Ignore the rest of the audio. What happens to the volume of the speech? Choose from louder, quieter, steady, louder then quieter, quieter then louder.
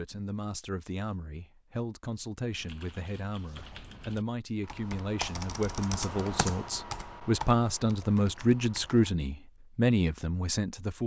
louder.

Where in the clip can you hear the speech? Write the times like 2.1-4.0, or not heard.
0.0-11.0.